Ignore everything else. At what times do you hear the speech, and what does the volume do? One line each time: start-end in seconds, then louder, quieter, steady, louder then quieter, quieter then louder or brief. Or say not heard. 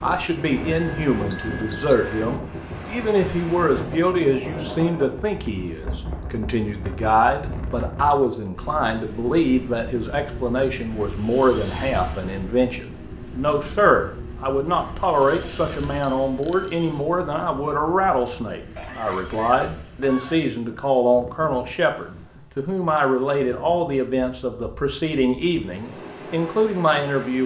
0.0-27.4 steady.